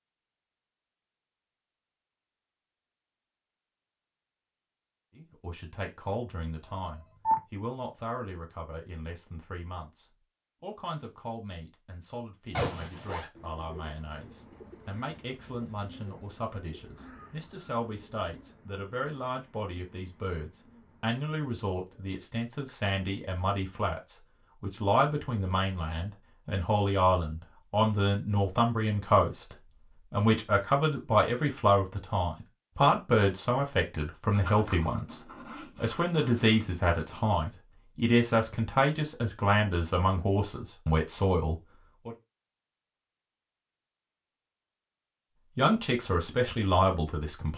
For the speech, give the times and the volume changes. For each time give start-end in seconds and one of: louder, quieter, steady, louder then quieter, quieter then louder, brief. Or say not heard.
5.2-42.1 louder
45.5-47.5 brief.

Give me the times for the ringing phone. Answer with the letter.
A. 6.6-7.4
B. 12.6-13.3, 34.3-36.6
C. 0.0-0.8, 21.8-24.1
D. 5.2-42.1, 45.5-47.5
A.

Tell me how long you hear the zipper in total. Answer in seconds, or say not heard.
3 s.